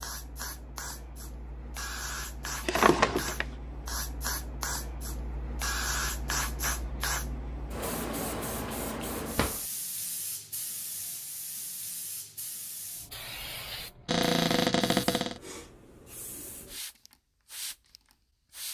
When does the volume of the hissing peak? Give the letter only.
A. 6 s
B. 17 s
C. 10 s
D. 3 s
A.